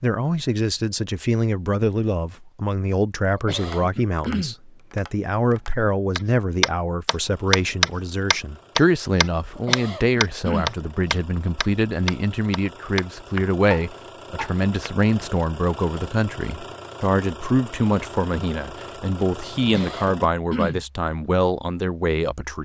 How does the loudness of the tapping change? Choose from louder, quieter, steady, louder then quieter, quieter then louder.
louder then quieter.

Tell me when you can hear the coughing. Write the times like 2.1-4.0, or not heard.
3.4-4.5, 9.6-10.8, 19.6-20.8.